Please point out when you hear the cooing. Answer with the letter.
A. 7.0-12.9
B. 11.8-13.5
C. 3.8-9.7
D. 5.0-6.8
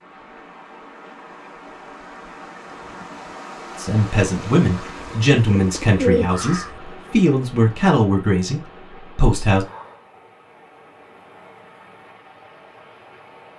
D.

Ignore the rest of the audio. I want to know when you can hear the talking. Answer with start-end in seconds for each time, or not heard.
3.8-9.7.